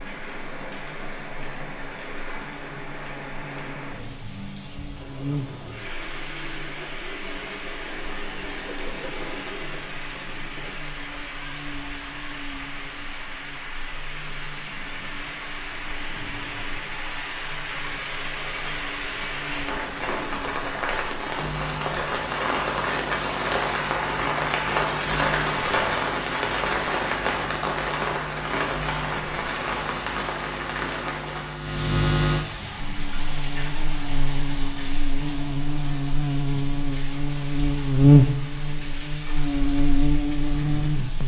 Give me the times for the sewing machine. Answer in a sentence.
The sewing machine can be heard from 5.0 to 11.2 s.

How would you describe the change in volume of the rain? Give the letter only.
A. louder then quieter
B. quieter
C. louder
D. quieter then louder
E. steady
A.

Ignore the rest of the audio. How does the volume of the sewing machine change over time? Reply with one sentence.
The loudness of the sewing machine goes up.